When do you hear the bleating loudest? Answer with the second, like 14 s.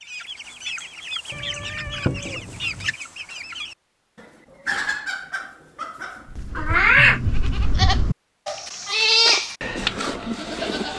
9 s.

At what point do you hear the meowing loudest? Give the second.
7 s.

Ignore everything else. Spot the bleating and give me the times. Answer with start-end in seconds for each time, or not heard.
6.2-10.9.